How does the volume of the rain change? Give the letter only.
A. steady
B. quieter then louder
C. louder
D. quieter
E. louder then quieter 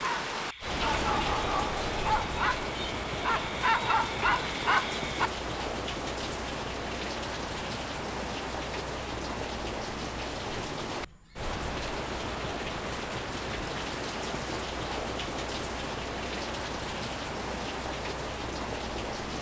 A.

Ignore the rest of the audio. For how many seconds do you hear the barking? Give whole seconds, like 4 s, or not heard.
5 s.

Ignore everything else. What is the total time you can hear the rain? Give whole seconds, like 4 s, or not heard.
19 s.